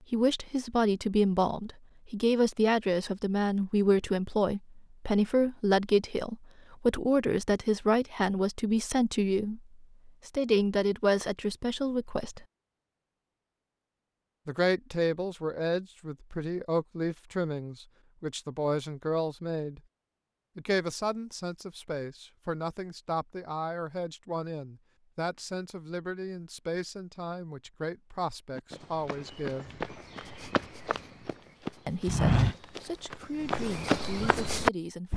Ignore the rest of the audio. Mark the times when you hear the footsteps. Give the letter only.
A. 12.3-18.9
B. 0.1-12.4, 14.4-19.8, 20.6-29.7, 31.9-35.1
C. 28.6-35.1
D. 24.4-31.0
C.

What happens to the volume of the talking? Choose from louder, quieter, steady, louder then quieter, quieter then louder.
quieter.